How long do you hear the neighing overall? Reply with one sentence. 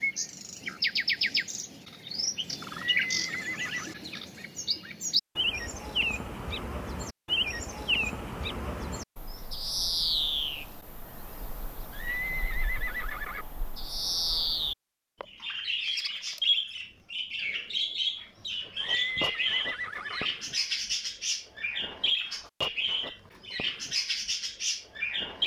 The neighing can be heard for 4 seconds in total.